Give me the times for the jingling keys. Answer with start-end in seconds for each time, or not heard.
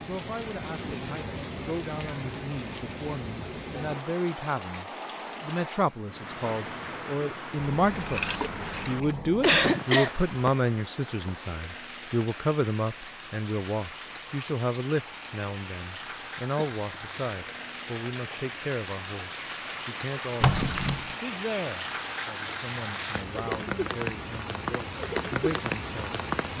7.5-9.7, 20.4-21.1.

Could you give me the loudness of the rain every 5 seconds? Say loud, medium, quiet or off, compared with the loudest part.
medium, medium, medium, medium, loud, loud.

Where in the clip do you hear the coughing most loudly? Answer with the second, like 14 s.
10 s.